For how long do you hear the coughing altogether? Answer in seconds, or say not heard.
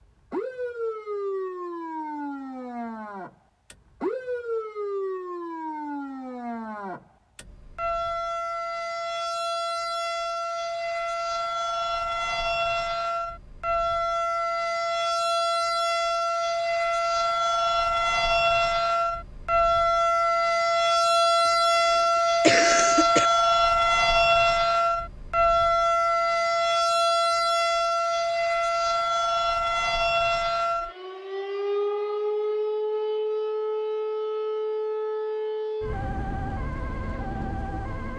2 s.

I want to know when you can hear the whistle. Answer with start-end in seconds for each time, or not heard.
not heard.